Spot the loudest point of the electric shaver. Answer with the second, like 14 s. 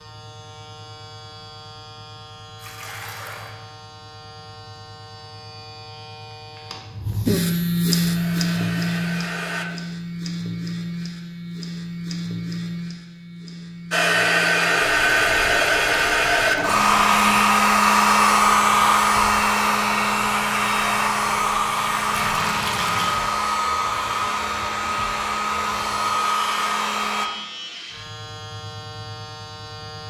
8 s.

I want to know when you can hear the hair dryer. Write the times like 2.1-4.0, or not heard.
7.9-9.7, 13.9-27.3.